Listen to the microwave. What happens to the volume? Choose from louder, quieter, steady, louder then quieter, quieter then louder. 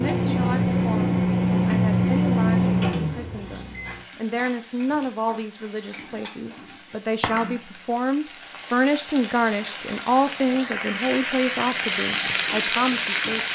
quieter.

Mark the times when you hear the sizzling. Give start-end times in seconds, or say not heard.
0.0-13.5.